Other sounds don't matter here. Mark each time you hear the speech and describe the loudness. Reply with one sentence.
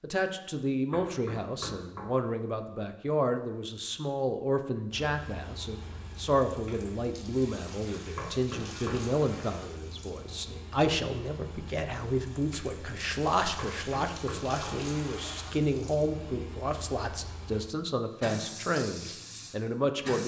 The speech can be heard from 0.0 to 20.2 s, at a steady volume.